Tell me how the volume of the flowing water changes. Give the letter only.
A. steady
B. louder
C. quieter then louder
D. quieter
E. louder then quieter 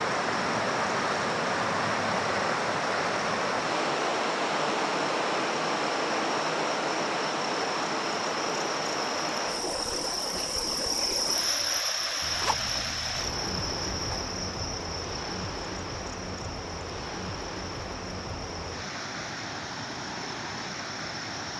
D.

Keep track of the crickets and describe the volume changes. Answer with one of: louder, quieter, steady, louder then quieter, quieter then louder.
louder then quieter.